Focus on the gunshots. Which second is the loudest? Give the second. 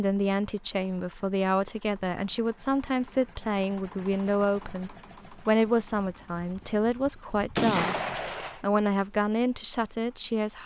8 s.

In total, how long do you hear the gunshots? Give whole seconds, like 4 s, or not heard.
3 s.